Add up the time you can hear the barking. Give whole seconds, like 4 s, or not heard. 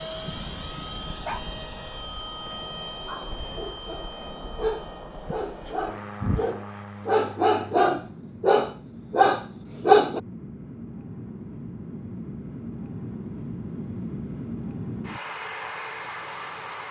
9 s.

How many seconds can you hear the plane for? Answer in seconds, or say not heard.
17 s.